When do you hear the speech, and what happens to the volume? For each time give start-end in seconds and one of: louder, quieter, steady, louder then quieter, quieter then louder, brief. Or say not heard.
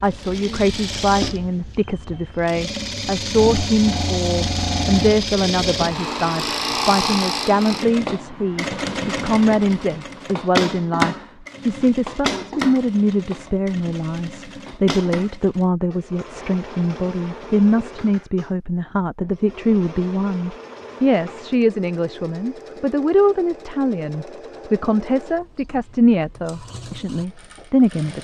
0.0-28.1 steady.